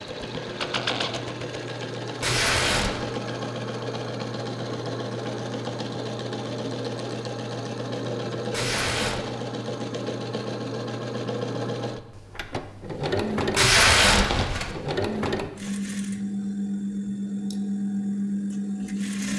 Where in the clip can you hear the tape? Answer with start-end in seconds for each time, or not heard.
2.2-3.0, 8.5-9.2, 13.6-14.8.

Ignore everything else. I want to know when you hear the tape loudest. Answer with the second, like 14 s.
14 s.